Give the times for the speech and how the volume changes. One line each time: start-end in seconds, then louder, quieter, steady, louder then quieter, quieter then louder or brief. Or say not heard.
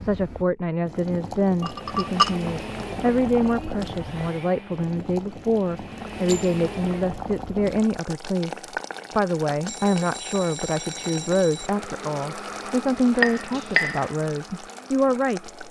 0.0-15.6 steady.